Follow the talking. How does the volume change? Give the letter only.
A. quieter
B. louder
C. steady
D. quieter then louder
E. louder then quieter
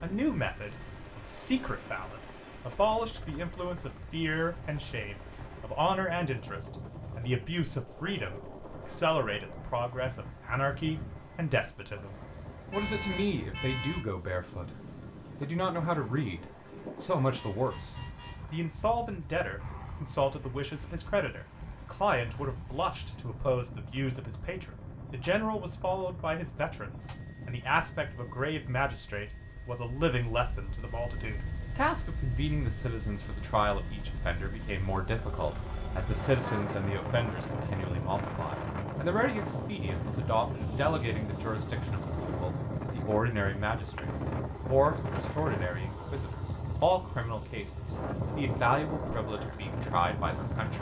C.